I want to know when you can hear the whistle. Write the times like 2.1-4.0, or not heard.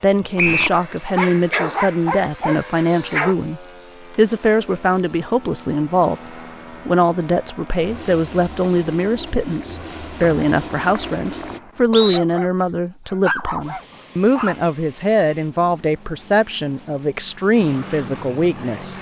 0.3-0.8, 10.2-12.2.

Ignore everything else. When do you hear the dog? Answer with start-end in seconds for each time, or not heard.
0.7-3.4, 12.0-14.6.